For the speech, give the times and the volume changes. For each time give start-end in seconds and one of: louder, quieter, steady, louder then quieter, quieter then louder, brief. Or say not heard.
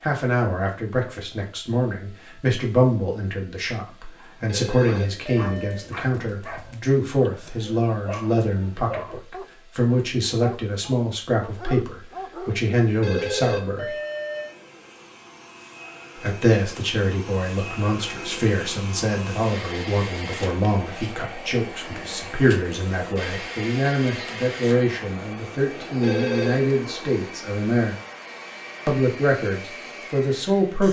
0.0-13.9 steady
16.1-27.9 steady
28.9-30.8 brief.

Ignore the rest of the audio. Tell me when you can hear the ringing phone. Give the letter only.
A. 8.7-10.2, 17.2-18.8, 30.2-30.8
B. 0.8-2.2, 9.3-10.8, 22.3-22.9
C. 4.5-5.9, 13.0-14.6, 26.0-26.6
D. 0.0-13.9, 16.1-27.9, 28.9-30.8
C.